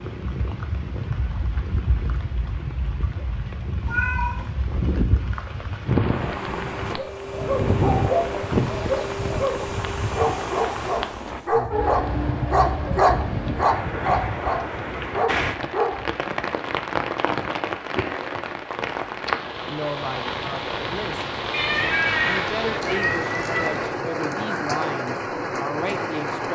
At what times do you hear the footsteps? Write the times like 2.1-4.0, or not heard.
not heard.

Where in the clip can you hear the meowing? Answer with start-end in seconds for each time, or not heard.
3.9-4.5, 21.5-23.9.